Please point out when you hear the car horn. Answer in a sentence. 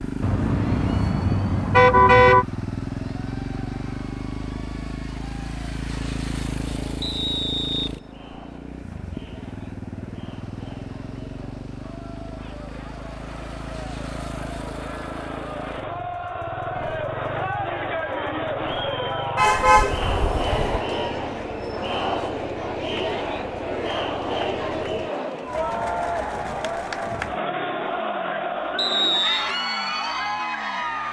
You can hear the car horn from 0.2 to 2.5 s and from 19.4 to 20.8 s.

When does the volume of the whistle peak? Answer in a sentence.
The loudest moment of the whistle is at 29 seconds.